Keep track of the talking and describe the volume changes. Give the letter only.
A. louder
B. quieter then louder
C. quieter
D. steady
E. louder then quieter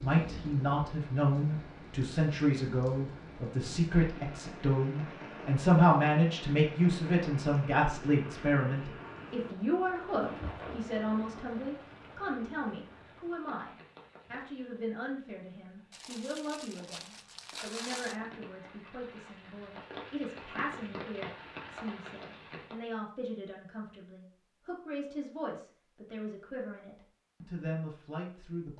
C.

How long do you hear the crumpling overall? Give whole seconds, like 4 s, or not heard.
2 s.